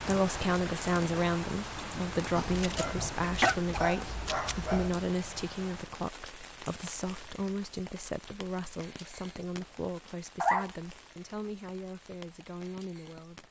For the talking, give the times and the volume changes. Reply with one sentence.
You can hear the talking from 0.0 to 13.4 s, getting quieter.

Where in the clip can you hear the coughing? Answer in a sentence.
You can hear the coughing from 1.8 to 3.5 s.